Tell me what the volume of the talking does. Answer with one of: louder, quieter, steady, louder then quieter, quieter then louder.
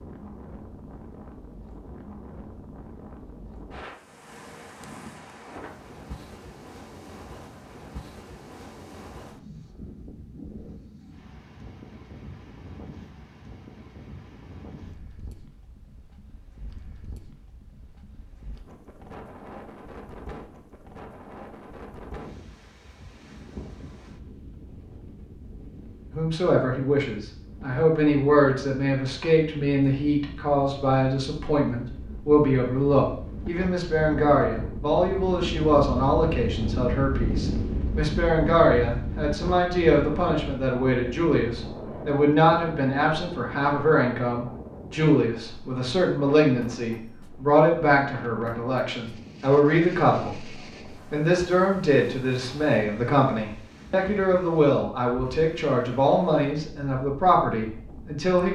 steady.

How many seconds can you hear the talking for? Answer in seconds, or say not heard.
32 s.